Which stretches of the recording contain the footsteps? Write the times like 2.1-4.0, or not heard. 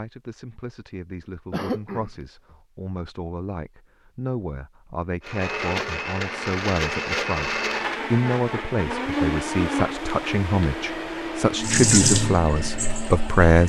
not heard.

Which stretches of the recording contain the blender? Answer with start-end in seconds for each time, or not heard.
5.2-13.6.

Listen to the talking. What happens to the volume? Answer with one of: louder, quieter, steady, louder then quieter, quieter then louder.
louder.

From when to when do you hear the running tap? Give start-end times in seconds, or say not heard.
11.6-13.4.